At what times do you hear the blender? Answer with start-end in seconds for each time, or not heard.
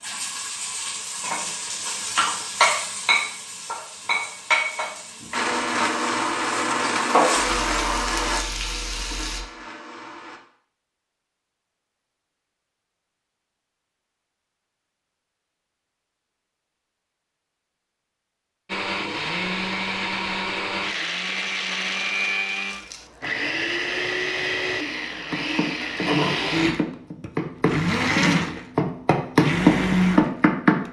5.3-10.4, 18.6-30.8.